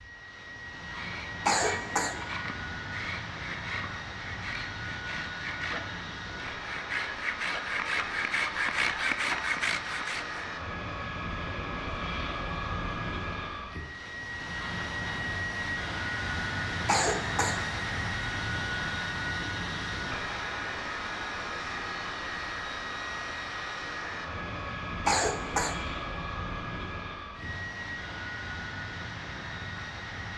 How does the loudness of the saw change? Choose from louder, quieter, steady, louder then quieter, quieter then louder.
louder.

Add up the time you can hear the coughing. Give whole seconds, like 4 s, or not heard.
2 s.